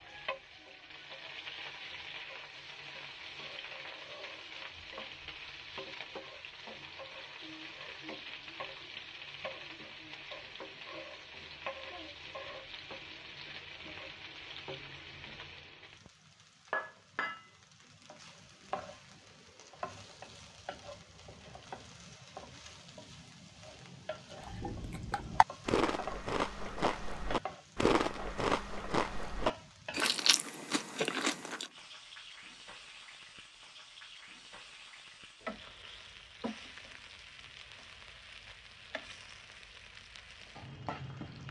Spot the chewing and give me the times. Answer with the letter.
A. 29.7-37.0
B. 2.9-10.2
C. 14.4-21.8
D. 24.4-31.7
D.